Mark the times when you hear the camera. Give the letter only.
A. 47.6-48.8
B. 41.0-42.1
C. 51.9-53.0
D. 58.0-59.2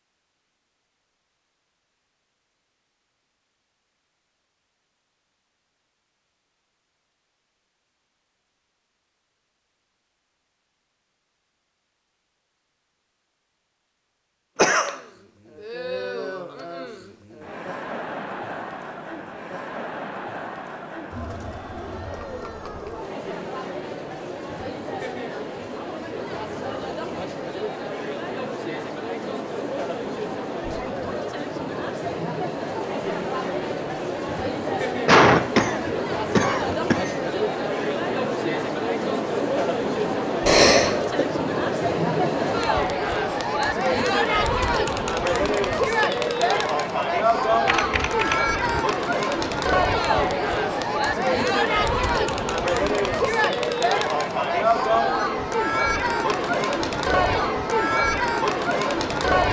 A.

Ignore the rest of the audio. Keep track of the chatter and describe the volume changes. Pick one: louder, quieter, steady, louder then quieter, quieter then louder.
louder.